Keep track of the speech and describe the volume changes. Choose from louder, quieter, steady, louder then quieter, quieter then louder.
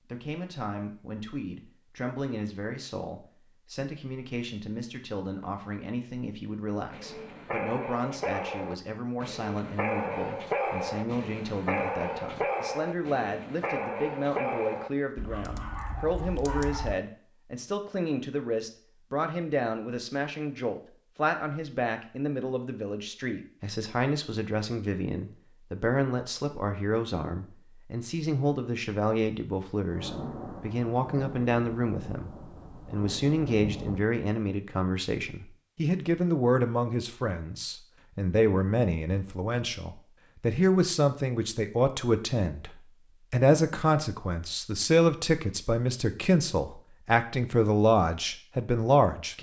louder.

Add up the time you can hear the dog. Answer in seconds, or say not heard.
10 s.